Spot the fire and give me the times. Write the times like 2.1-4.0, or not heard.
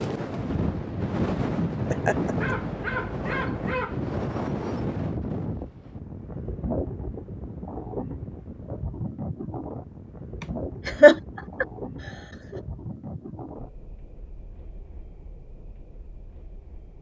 not heard.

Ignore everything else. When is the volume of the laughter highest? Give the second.
11 s.